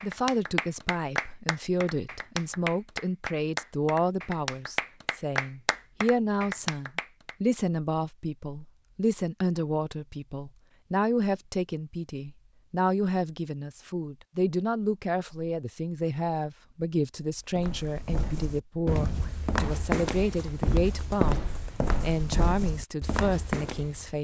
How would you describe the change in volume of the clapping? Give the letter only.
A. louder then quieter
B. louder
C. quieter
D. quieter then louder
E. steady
E.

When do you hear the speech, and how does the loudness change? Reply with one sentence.
The speech can be heard from 0.0 to 24.1 s, at a steady volume.